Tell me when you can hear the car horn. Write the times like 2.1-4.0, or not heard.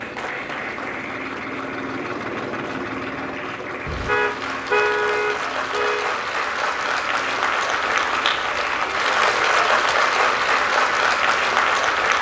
3.9-6.2.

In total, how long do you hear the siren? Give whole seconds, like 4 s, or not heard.
not heard.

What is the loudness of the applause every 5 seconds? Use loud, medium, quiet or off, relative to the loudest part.
quiet, loud, loud.